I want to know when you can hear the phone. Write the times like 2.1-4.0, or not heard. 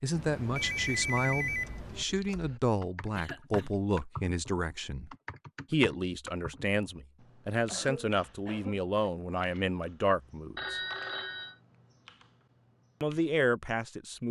0.1-2.0, 10.6-11.6.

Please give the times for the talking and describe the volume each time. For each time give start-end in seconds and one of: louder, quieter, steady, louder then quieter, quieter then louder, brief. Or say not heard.
0.0-10.8 steady
13.0-14.2 brief.